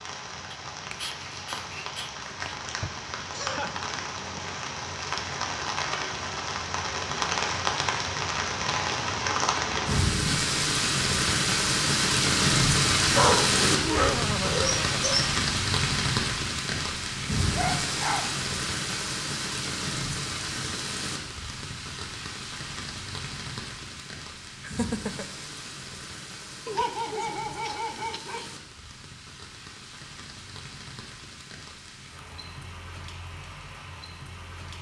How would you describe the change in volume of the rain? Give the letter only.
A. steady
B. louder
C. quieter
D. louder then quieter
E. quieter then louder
D.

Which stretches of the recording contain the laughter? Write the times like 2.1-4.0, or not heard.
2.8-3.8, 13.8-15.2, 24.6-25.2.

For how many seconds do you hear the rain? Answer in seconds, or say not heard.
35 s.